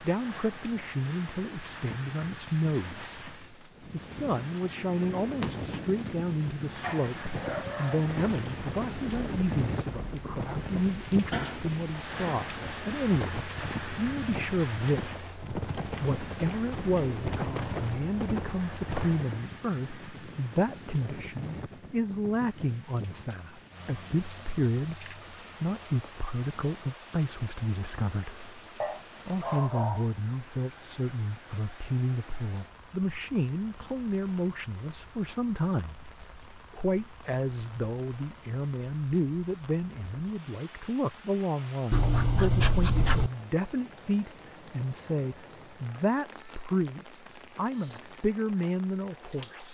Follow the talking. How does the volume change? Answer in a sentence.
The volume of the talking stays about the same.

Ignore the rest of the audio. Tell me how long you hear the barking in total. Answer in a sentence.
The barking can be heard for 5 seconds in total.